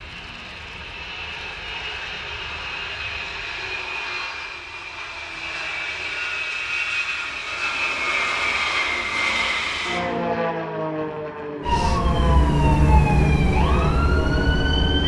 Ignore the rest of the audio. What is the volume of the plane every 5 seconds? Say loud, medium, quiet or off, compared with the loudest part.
medium, loud, loud.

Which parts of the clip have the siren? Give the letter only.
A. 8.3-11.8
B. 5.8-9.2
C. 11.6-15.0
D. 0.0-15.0
C.